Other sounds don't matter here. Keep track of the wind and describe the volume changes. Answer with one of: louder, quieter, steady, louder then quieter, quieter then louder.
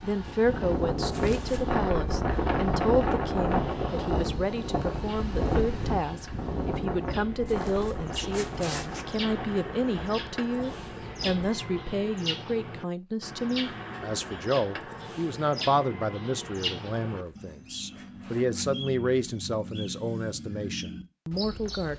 quieter.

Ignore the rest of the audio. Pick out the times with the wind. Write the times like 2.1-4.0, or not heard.
0.0-11.6.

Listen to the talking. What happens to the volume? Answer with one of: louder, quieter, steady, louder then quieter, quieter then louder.
steady.